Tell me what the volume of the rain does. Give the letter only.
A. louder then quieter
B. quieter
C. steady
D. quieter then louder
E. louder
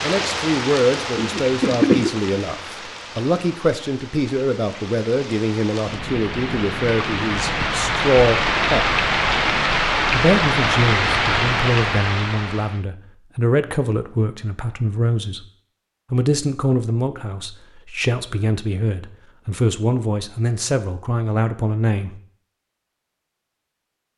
D.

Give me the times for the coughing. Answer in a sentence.
The coughing can be heard from 1.1 to 2.1 s.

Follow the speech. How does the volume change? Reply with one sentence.
The loudness of the speech stays about the same.